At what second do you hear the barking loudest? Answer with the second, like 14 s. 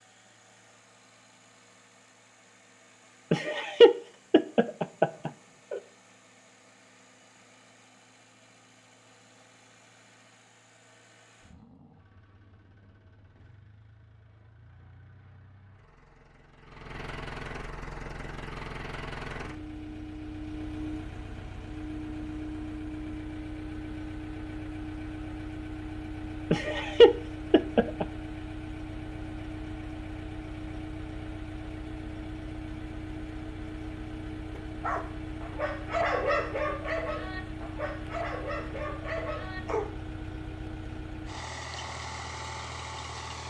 36 s.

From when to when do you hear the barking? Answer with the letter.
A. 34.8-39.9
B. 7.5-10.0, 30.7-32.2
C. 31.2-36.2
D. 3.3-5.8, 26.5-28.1
A.